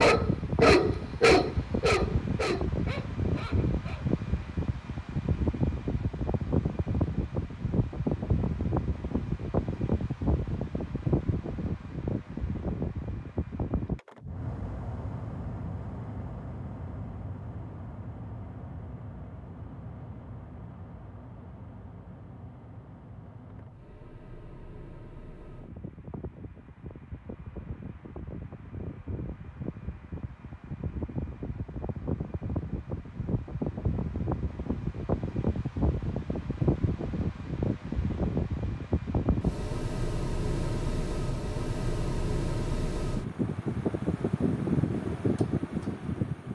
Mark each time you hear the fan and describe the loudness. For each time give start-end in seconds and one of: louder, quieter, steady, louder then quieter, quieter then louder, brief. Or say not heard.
0.0-46.5 quieter then louder.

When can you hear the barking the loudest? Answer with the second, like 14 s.
1 s.